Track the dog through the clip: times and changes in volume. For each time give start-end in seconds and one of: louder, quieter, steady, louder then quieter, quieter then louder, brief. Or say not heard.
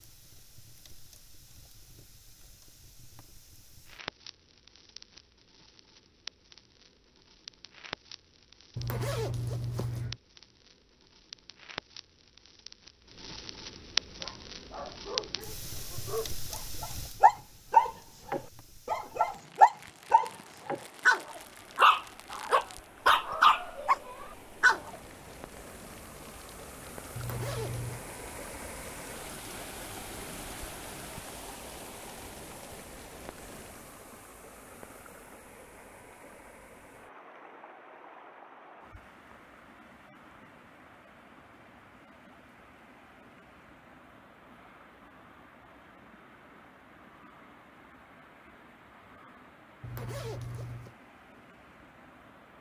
14.1-24.9 louder.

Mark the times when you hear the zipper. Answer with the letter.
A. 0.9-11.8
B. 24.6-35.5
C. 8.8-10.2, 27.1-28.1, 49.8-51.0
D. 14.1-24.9
C.